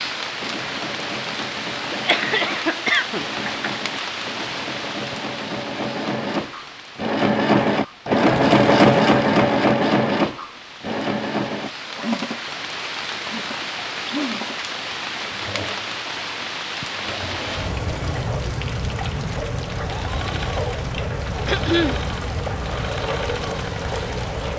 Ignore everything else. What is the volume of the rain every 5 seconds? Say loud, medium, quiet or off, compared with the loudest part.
loud, medium, loud, loud, loud.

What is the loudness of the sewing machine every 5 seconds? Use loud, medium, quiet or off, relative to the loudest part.
quiet, loud, medium, quiet, quiet.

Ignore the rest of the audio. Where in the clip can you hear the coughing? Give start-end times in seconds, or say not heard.
1.9-3.7, 21.4-22.0.